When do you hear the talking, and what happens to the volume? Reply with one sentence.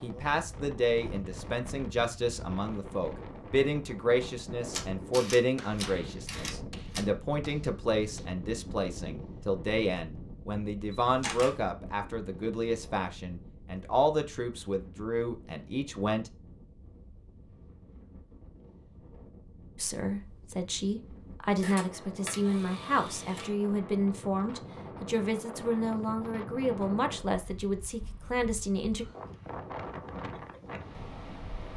You can hear the talking from 0.0 to 16.3 s, at a steady volume; and from 19.8 to 29.1 s, at a steady volume.